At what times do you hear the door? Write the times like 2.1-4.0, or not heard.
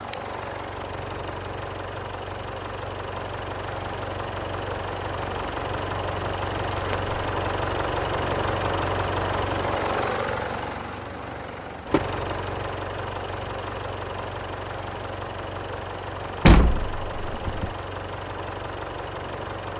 6.7-7.2, 16.4-17.7.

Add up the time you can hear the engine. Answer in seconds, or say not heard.
20 s.